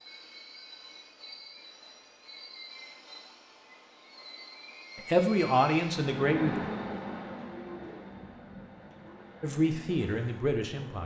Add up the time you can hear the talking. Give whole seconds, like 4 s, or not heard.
3 s.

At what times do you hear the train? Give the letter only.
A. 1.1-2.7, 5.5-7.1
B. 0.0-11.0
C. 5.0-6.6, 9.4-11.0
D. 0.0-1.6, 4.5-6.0
B.